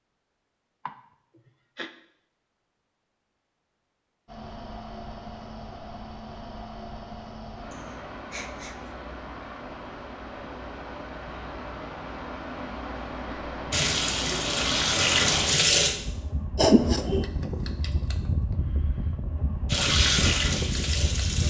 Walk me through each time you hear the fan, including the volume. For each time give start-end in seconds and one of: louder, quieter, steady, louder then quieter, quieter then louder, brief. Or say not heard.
4.2-21.4 louder.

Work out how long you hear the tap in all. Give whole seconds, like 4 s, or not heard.
4 s.